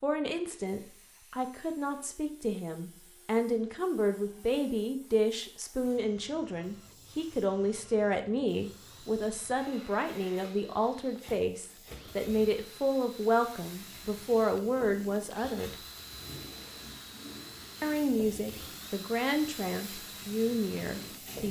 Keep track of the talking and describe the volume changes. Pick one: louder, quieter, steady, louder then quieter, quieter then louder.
steady.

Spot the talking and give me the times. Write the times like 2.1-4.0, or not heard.
0.0-15.8, 17.8-21.4.